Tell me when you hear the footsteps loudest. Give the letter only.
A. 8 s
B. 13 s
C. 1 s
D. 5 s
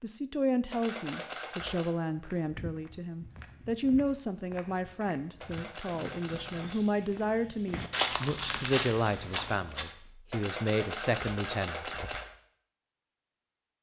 A.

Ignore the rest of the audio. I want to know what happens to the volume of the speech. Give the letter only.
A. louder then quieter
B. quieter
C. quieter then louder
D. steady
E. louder
D.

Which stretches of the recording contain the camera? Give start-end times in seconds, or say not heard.
0.7-1.9, 5.4-6.8, 10.3-12.2.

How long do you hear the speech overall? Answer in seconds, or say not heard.
12 s.